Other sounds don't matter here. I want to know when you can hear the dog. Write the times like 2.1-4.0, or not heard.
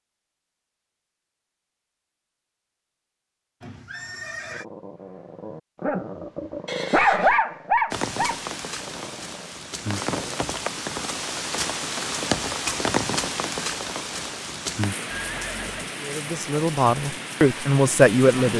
4.5-10.4.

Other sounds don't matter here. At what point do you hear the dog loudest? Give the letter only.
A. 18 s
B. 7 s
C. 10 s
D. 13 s
B.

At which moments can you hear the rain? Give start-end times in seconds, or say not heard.
7.9-18.5.